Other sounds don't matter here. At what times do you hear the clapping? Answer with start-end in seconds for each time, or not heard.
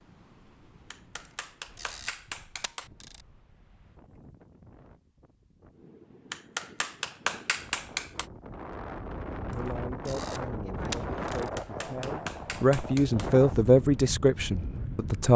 0.9-2.9, 6.3-8.2, 11.3-13.3.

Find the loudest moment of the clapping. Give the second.
7 s.